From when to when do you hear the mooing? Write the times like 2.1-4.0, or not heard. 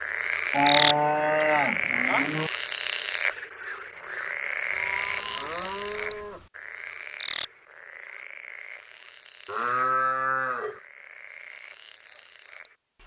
0.5-2.5, 4.7-6.5, 9.4-10.8.